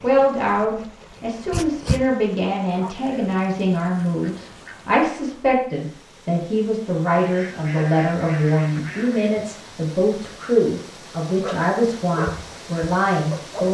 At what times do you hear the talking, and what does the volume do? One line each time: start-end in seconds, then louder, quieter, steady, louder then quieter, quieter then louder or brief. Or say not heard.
0.0-13.7 steady.